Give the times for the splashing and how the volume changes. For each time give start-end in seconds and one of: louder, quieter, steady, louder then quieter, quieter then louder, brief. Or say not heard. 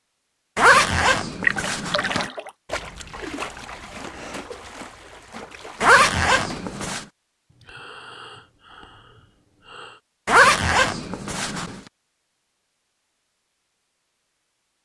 1.4-6.9 quieter.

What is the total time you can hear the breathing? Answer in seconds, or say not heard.
3 s.